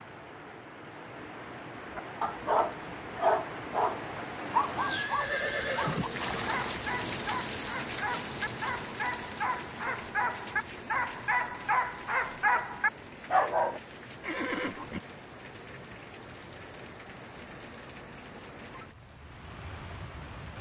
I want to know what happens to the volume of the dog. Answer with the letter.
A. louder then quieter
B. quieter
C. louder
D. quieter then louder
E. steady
D.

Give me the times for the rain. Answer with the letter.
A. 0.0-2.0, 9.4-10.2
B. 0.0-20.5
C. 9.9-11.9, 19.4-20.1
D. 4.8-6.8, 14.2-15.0
B.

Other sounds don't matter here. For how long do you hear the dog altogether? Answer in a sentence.
You can hear the dog for 12 seconds altogether.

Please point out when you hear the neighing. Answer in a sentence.
The neighing can be heard from 4.8 to 6.8 s and from 14.2 to 15.0 s.